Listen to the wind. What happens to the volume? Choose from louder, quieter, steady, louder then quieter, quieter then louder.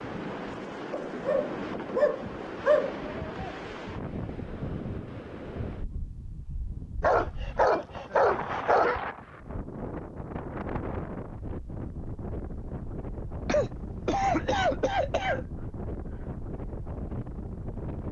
steady.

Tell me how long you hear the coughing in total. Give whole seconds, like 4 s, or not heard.
2 s.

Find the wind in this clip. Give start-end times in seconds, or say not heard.
0.0-18.0.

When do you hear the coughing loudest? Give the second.
14 s.